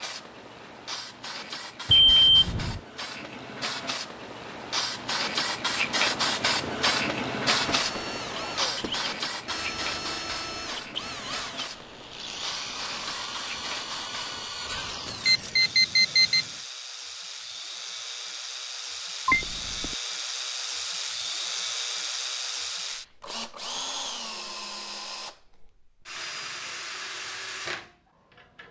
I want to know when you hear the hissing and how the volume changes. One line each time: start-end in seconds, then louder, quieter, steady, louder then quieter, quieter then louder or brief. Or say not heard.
0.0-14.5 louder then quieter.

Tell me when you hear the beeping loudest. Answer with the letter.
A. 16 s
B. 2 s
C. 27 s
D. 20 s
B.